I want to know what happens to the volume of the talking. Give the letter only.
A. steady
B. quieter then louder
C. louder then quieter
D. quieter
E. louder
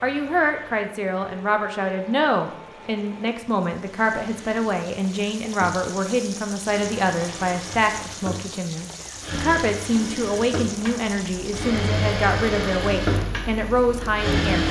A.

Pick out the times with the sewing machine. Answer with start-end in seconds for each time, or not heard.
0.0-14.6.